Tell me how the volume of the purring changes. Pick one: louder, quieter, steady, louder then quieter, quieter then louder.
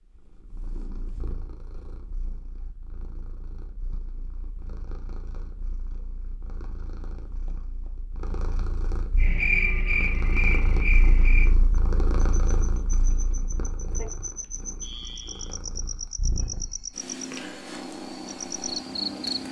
louder.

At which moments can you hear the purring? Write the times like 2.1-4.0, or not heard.
0.0-19.4.